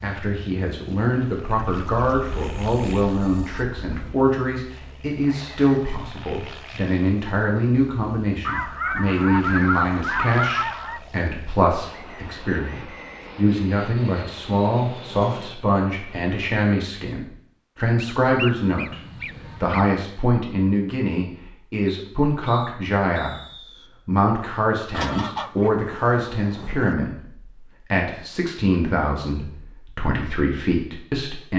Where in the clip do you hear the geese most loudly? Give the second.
10 s.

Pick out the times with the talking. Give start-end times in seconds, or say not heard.
0.0-23.4, 24.1-31.5.